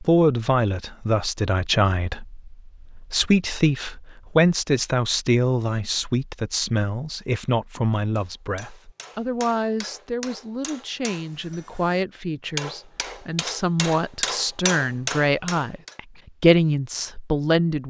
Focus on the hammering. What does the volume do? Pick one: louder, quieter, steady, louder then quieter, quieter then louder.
louder.